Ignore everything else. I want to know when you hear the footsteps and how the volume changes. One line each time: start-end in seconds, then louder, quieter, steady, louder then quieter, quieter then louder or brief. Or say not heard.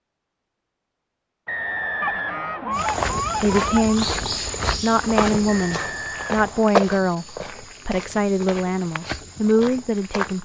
2.7-10.4 quieter.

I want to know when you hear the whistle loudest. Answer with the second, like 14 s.
2 s.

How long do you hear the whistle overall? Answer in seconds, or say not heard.
3 s.